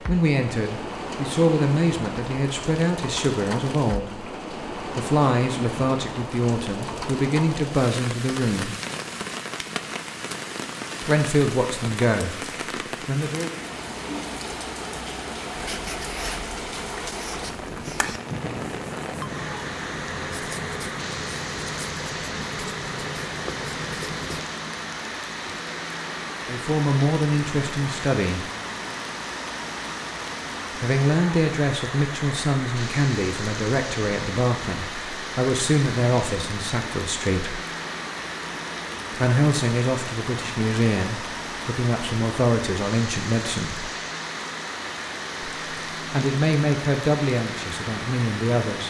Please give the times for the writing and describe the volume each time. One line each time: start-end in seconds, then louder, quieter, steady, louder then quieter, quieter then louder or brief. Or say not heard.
15.6-24.4 steady.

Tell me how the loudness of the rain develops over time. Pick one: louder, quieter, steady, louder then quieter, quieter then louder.
steady.